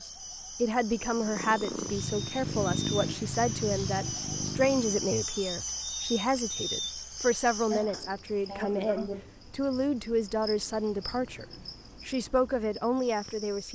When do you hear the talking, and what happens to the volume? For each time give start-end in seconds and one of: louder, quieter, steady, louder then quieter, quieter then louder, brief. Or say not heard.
0.0-11.4 steady
12.1-13.7 brief.